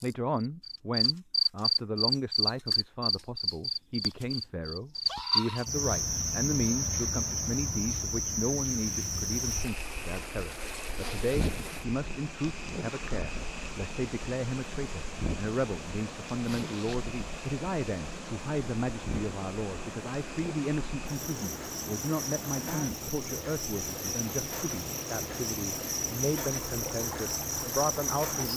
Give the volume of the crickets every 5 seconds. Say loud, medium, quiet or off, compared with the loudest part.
loud, loud, quiet, quiet, medium, medium.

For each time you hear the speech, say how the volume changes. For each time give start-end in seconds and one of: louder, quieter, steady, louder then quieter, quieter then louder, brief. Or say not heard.
0.0-28.5 steady.